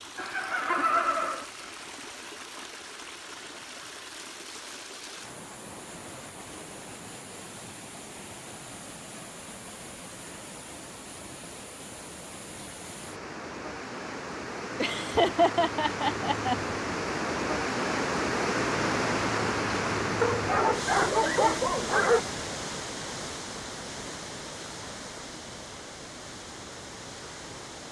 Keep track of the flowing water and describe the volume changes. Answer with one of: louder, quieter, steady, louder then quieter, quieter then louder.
louder then quieter.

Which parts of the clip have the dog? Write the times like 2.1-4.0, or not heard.
20.2-22.2.